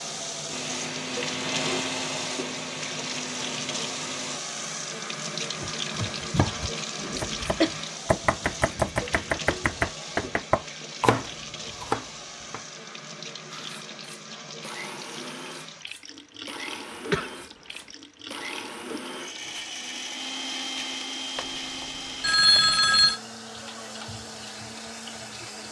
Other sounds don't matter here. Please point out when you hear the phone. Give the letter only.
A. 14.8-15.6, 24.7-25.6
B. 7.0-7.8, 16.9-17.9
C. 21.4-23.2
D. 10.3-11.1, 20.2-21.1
C.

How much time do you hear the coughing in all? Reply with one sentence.
The coughing can be heard for 2 seconds in total.